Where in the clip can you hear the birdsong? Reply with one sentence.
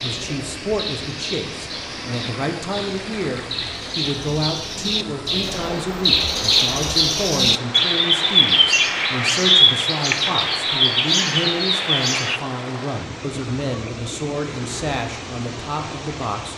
You can hear the birdsong from 0.0 to 12.4 s.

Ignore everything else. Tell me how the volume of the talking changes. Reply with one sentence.
The loudness of the talking stays about the same.